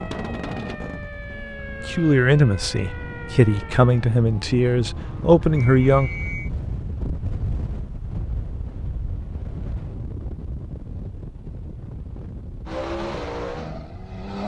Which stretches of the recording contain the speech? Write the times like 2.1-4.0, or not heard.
1.8-6.1.